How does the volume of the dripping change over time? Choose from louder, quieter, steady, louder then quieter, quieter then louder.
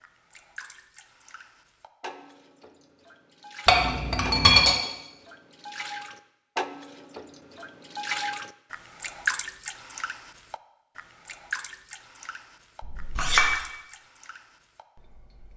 louder then quieter.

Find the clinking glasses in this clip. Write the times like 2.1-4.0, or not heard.
3.6-4.8, 12.8-13.6.